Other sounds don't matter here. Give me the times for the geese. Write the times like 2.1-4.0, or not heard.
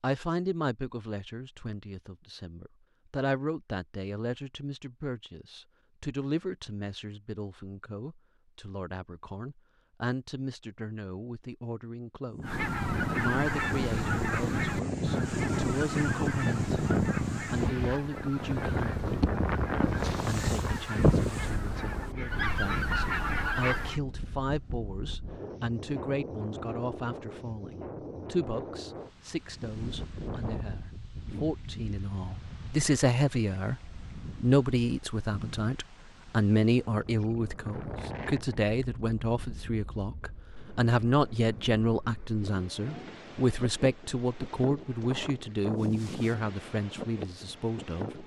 12.4-24.0.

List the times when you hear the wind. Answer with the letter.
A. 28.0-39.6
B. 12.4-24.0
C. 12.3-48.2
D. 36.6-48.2
C.